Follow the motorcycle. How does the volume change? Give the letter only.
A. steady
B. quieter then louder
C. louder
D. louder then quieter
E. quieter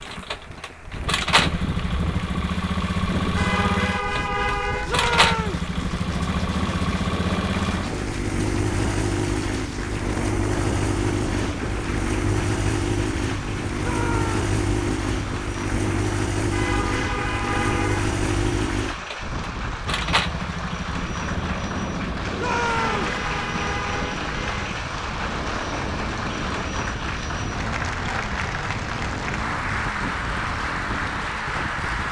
E.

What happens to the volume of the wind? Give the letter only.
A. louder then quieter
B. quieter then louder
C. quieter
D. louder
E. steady
E.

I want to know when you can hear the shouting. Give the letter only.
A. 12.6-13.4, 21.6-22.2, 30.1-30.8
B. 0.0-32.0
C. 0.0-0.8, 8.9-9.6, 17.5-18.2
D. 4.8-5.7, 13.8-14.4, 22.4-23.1
D.